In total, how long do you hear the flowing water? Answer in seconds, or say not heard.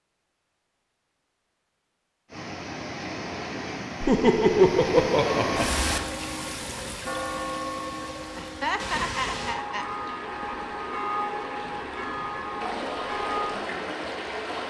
12 s.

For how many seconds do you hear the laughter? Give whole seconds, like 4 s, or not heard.
3 s.